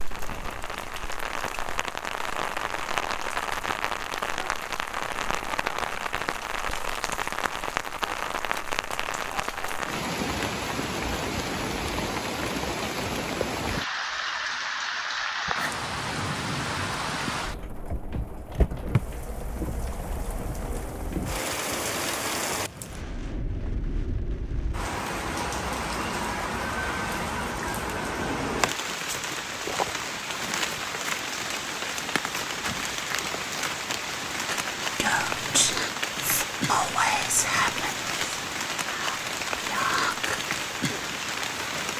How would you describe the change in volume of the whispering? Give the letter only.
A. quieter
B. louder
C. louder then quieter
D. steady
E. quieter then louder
E.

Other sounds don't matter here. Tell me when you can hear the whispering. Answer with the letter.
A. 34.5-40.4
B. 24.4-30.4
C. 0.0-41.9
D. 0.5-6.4
A.